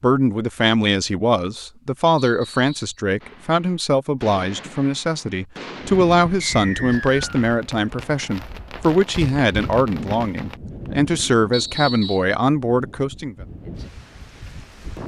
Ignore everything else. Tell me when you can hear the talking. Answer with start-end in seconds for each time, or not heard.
0.0-13.3.